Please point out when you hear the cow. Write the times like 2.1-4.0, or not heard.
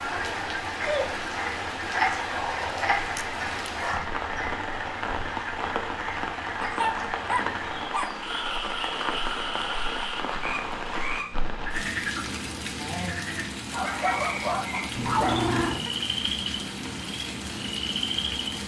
not heard.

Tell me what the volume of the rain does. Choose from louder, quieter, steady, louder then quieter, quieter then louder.
steady.